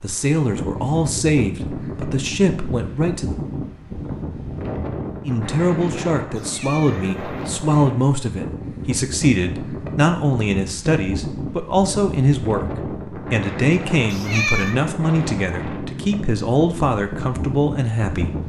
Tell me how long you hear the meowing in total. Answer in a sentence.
You can hear the meowing for 2 seconds altogether.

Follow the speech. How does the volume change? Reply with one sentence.
The volume of the speech stays about the same.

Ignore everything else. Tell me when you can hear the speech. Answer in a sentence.
You can hear the speech from 0.0 to 3.4 s and from 5.2 to 18.3 s.